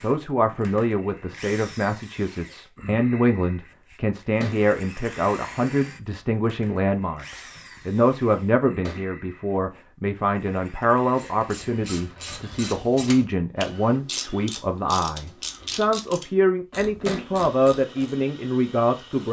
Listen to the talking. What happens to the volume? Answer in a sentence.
The volume of the talking stays about the same.